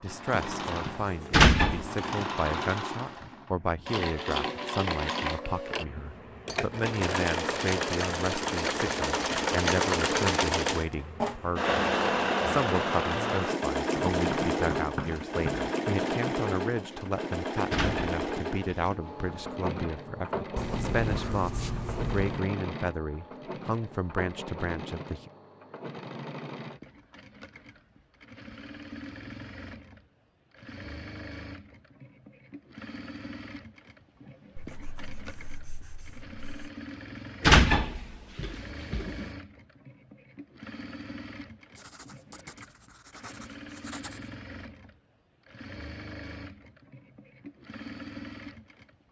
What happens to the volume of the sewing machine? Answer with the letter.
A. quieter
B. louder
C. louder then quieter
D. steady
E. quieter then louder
A.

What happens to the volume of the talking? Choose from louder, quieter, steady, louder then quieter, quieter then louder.
steady.